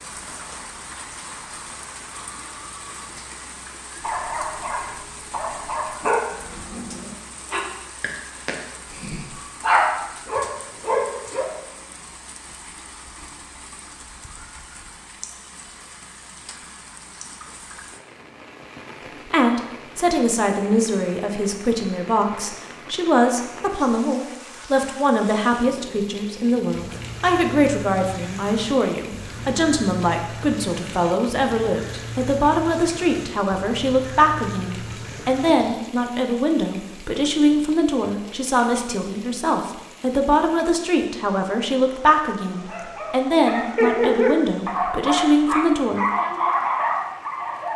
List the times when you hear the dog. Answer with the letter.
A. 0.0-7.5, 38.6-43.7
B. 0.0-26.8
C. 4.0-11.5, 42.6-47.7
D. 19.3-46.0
C.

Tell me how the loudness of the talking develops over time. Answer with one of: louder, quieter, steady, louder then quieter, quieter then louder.
steady.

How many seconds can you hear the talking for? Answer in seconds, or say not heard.
27 s.